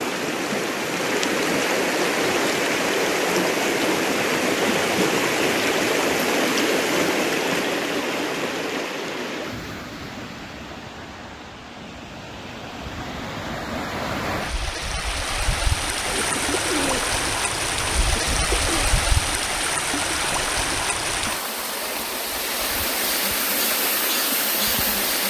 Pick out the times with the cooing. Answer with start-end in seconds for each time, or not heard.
16.1-18.9.